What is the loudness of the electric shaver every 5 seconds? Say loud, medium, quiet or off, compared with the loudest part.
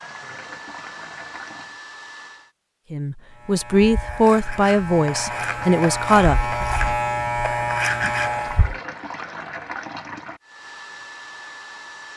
medium, loud, off.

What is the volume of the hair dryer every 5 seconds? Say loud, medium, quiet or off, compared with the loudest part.
loud, off, loud.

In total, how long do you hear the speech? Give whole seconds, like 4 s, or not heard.
4 s.